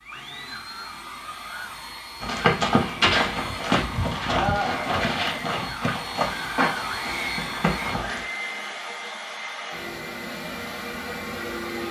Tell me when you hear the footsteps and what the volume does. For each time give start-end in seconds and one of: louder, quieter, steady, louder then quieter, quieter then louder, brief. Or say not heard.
2.2-8.2 quieter.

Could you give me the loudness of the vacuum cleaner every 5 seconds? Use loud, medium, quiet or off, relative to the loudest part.
medium, loud, loud.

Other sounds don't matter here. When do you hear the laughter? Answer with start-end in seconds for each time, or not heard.
4.2-5.3.